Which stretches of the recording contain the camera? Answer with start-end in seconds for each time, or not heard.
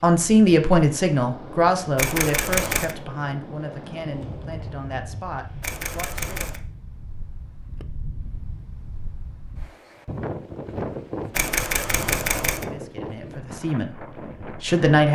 1.9-3.0, 5.6-6.6, 11.3-12.7.